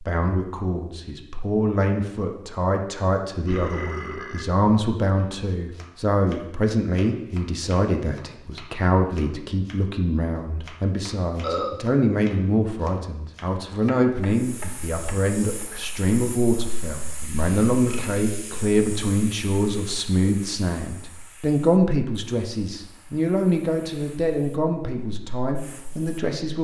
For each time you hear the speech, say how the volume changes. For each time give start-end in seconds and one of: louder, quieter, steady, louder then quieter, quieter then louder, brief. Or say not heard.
0.0-26.5 steady.